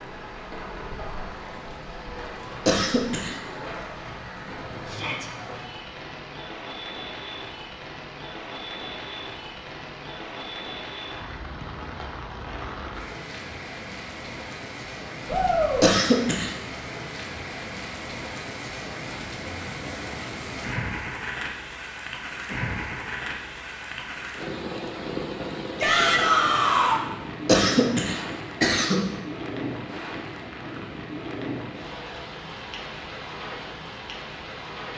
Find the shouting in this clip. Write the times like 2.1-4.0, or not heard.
4.8-5.2, 15.2-15.8, 25.8-27.0.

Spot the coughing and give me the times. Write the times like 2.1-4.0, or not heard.
2.6-3.4, 15.8-16.6, 27.4-29.1.